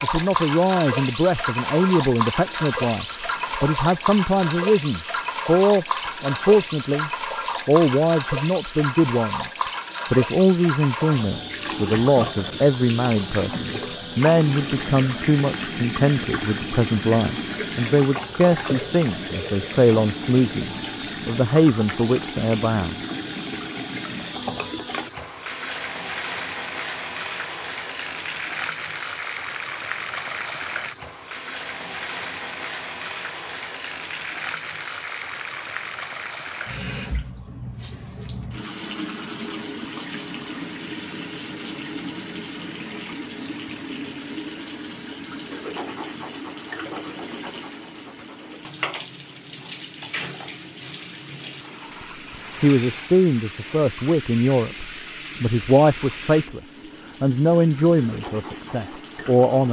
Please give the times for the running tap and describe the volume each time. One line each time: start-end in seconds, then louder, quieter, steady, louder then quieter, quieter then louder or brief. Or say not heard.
0.0-59.6 quieter.